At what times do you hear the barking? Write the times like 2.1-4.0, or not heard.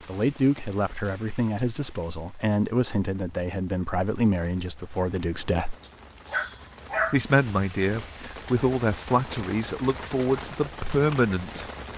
5.3-7.2.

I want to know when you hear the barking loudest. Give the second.
7 s.